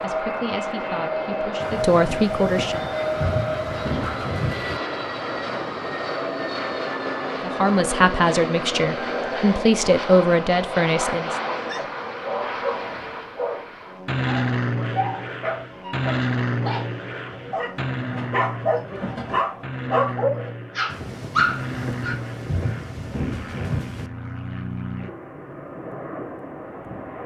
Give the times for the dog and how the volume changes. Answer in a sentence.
The dog can be heard from 11.6 to 22.1 s, getting louder.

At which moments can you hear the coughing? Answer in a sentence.
The coughing can't be heard in this clip.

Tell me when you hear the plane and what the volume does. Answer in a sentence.
The plane can be heard from 0.0 to 27.2 s, getting quieter.